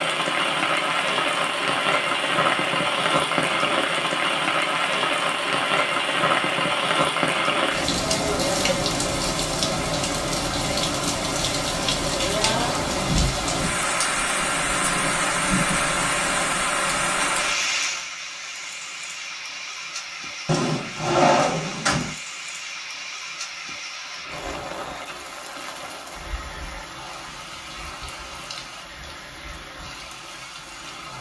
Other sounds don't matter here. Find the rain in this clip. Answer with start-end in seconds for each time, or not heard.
0.0-31.1.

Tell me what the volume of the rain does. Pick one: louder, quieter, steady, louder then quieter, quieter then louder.
quieter.